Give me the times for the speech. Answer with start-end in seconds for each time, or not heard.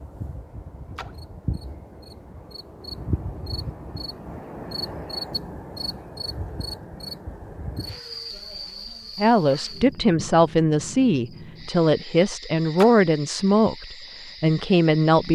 9.2-15.3.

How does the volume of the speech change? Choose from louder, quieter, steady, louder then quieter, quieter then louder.
steady.